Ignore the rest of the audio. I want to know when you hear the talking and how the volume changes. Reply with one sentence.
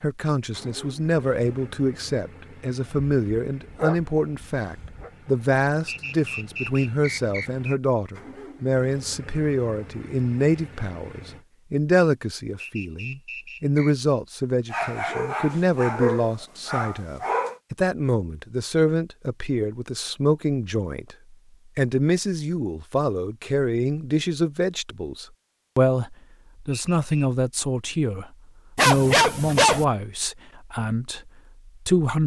You can hear the talking from 0.0 to 32.2 s, at a steady volume.